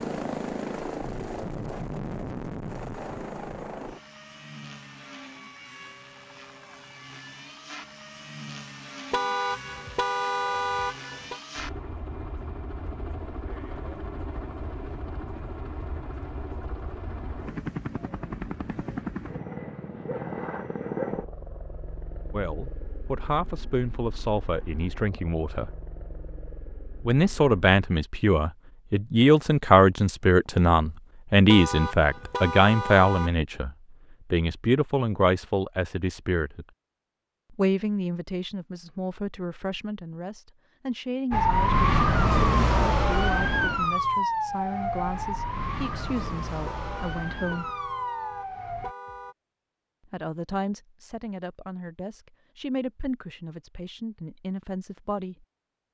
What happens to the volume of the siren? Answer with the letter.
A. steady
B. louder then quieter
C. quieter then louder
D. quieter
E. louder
D.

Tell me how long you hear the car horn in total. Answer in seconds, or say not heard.
7 s.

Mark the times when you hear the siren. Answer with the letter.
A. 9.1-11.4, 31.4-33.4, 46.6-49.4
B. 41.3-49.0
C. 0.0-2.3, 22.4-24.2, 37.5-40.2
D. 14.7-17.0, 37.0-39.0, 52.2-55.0
B.